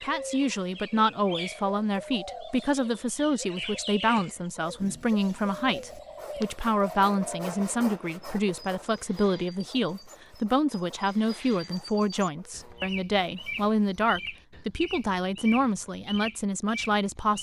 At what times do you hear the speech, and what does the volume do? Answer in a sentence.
The speech can be heard from 0.0 to 17.3 s, at a steady volume.